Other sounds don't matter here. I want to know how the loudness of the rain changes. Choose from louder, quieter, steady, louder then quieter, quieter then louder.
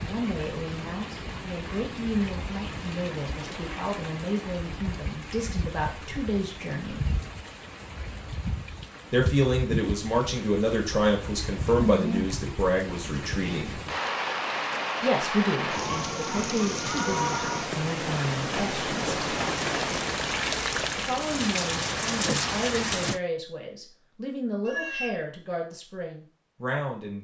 louder.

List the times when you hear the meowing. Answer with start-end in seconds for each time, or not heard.
24.6-25.2.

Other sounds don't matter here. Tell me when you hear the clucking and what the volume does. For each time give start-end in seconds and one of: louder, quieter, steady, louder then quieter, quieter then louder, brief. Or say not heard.
not heard.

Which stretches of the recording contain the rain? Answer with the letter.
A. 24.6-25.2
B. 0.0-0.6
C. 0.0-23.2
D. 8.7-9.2
C.